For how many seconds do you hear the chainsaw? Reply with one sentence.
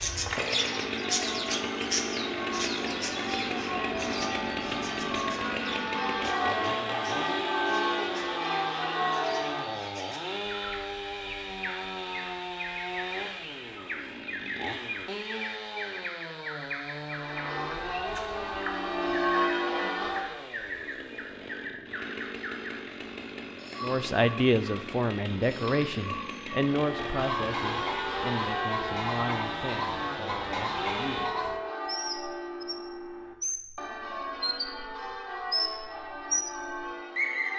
The chainsaw can be heard for 31 seconds in total.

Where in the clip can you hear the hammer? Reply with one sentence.
The hammer can't be heard in this clip.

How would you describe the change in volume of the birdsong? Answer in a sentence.
The loudness of the birdsong goes down, then up.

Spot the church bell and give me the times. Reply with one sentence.
You can hear the church bell from 0.0 to 9.8 s, from 17.1 to 20.4 s and from 26.6 to 37.5 s.